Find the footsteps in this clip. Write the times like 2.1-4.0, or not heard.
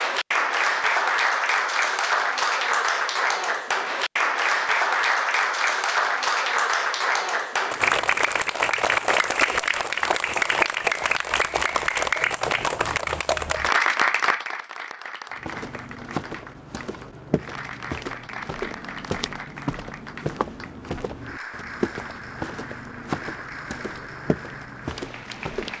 15.3-25.7.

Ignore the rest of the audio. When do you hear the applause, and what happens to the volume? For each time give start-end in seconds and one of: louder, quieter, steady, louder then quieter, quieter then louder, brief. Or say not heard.
0.0-25.7 quieter.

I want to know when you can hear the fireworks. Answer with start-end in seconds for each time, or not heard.
not heard.